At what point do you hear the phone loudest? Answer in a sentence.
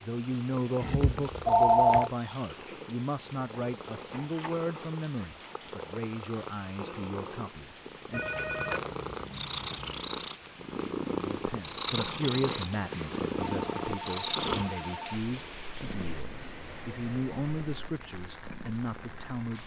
The loudest moment of the phone is at 2 seconds.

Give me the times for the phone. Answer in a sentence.
The phone can be heard from 0.8 to 2.1 s, from 8.1 to 10.0 s and from 13.4 to 14.9 s.